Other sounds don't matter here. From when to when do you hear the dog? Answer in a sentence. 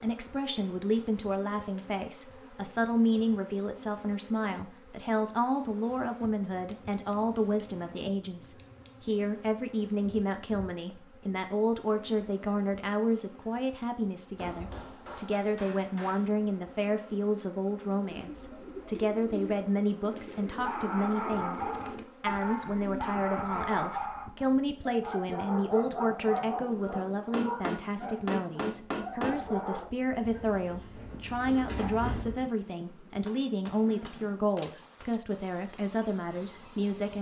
The dog can be heard from 20.6 to 29.9 s.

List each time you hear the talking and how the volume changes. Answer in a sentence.
The talking can be heard from 0.0 to 37.1 s, at a steady volume.